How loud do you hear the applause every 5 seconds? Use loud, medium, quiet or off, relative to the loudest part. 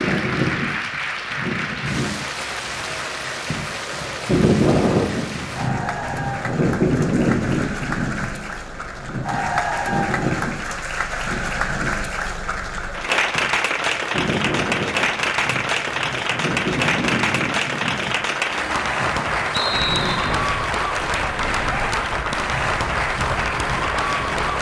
medium, medium, loud, loud, loud.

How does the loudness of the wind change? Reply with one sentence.
The loudness of the wind goes down.